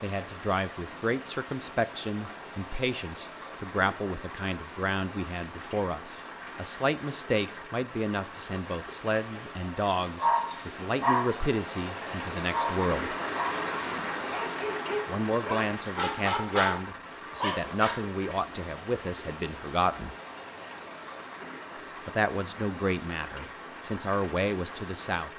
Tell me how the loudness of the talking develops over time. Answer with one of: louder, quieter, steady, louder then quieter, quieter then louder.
steady.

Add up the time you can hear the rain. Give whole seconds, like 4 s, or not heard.
25 s.